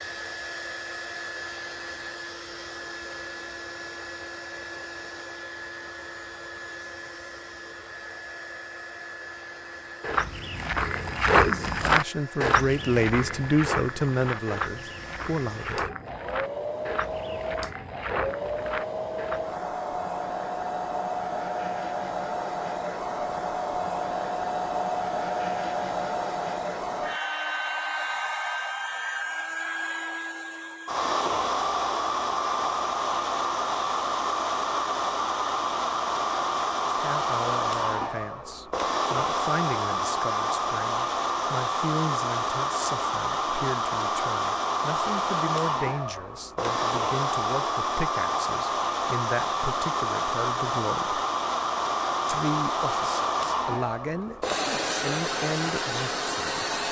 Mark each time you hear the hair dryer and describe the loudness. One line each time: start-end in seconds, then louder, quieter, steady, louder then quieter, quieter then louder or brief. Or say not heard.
0.0-56.8 louder.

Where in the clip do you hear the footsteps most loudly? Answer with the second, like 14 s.
11 s.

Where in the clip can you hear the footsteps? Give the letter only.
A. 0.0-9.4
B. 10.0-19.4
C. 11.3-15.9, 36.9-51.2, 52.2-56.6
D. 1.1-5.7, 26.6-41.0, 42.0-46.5
B.